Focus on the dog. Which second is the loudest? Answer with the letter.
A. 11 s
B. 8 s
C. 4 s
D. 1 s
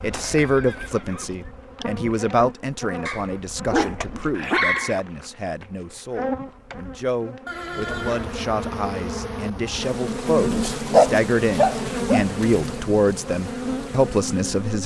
A.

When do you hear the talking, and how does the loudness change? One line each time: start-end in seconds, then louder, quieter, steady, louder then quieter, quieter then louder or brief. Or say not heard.
0.0-14.8 quieter then louder.